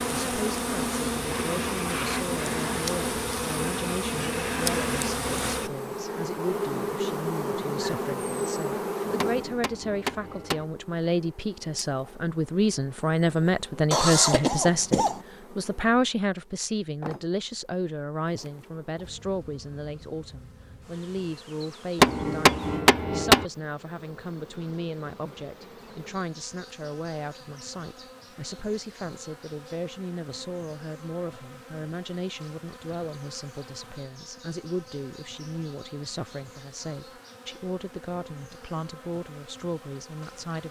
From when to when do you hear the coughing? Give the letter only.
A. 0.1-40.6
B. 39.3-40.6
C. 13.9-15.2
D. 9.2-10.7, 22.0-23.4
C.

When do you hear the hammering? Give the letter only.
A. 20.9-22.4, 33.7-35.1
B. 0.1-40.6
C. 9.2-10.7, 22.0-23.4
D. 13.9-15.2
C.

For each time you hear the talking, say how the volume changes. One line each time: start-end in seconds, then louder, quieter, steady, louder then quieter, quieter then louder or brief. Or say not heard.
0.1-40.6 louder then quieter.